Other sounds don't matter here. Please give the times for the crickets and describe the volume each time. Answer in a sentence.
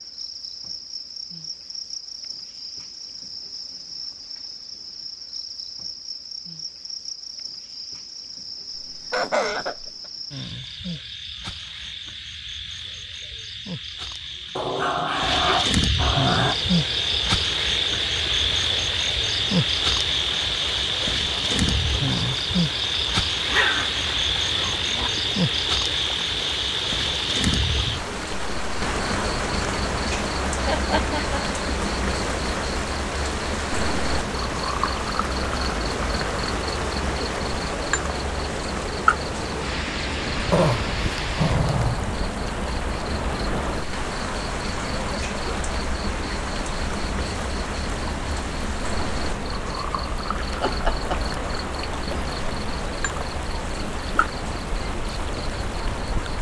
The crickets can be heard from 0.0 to 56.3 s, getting louder then quieter.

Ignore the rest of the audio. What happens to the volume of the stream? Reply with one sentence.
The volume of the stream stays about the same.